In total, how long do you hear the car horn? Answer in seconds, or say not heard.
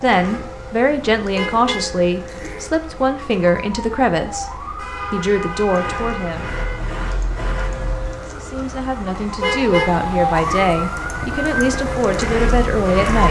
5 s.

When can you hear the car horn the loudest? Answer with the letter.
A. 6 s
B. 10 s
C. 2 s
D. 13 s
B.